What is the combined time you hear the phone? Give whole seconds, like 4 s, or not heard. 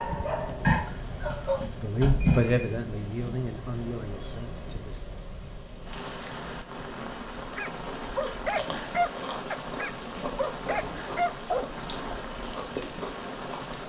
2 s.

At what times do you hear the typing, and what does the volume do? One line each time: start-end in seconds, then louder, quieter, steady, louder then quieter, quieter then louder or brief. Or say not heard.
not heard.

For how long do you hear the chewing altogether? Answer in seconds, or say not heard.
6 s.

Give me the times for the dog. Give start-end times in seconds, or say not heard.
0.0-1.7, 7.5-11.8.